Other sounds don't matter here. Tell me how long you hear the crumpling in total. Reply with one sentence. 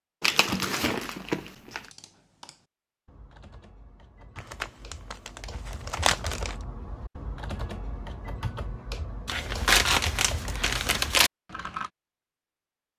You can hear the crumpling for 6 seconds altogether.